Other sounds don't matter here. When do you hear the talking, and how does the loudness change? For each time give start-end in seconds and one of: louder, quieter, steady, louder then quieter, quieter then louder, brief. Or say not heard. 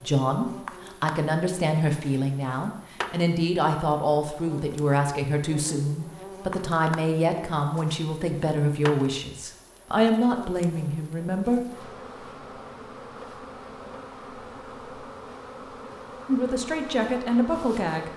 0.0-11.6 steady
16.2-18.1 brief.